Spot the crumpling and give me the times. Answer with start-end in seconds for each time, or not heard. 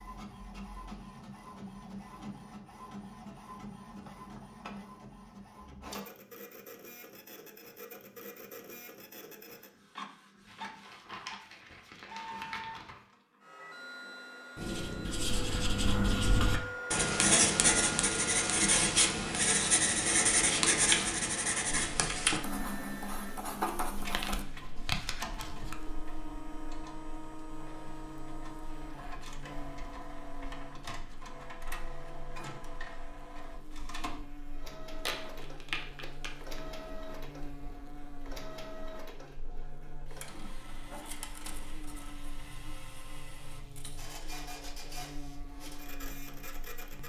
10.4-13.1, 23.9-25.8, 35.0-36.6.